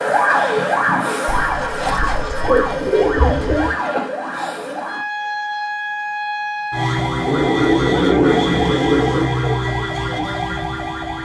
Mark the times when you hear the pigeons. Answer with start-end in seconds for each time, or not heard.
1.2-3.8, 7.2-9.2.